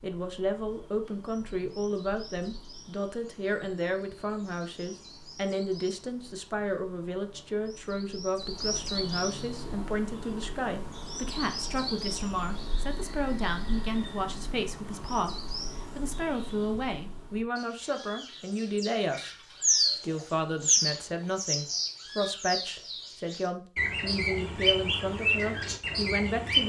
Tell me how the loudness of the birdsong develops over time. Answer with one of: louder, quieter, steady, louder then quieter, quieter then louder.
louder.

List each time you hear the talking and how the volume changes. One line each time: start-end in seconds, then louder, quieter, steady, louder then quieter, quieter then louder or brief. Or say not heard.
0.0-26.6 steady.